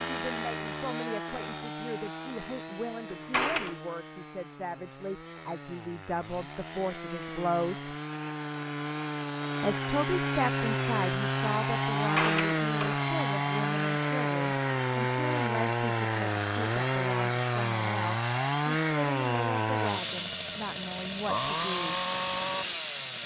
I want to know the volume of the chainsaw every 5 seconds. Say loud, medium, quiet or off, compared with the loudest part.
medium, medium, loud, loud, loud.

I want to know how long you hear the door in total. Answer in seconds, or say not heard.
2 s.